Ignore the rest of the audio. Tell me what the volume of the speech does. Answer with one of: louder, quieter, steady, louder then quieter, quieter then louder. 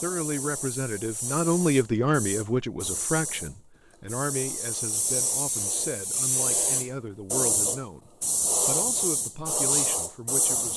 quieter.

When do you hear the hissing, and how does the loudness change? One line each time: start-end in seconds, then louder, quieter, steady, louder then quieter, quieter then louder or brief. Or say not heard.
0.0-10.7 louder.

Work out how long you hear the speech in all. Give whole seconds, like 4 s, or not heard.
11 s.